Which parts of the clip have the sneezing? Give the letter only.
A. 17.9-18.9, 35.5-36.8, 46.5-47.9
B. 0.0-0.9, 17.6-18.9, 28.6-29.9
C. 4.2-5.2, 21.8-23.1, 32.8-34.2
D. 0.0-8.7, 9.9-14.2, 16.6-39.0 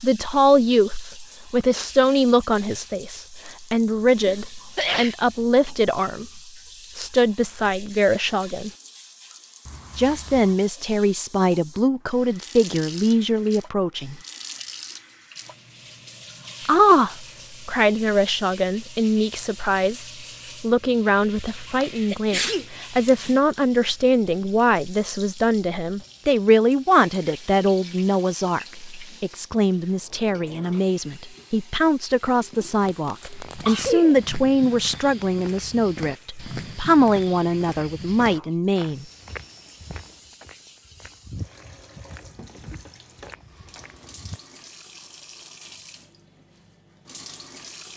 C.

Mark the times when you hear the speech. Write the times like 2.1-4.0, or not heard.
0.0-8.7, 9.9-14.2, 16.6-39.0.